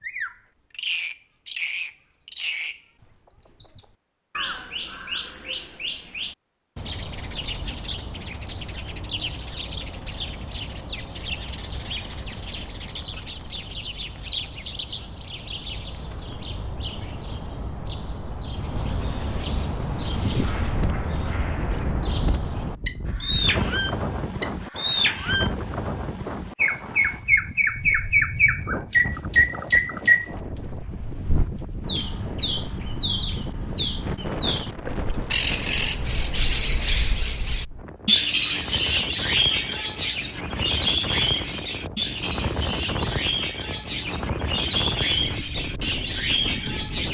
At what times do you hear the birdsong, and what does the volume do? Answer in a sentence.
The birdsong can be heard from 0.0 to 47.0 s, getting louder.